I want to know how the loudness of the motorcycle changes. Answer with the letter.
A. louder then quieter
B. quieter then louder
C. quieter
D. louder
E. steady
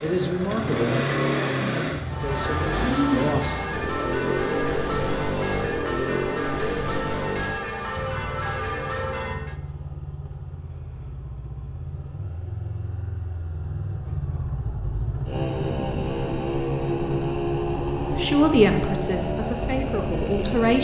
B.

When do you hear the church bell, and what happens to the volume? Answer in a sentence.
You can hear the church bell from 2.0 to 9.6 s, at a steady volume.